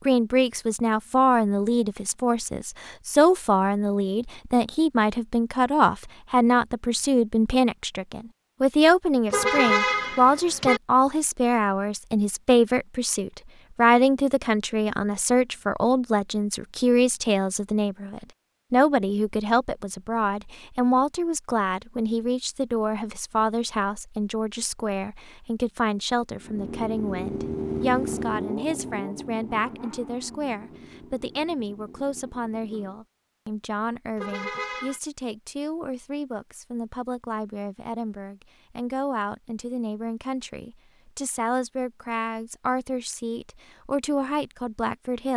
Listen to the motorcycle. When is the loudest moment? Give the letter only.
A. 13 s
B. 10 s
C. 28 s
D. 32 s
C.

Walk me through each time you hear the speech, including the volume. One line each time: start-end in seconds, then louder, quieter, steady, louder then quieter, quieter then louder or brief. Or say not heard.
0.1-45.3 quieter.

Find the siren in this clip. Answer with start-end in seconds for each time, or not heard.
not heard.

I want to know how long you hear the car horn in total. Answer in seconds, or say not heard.
2 s.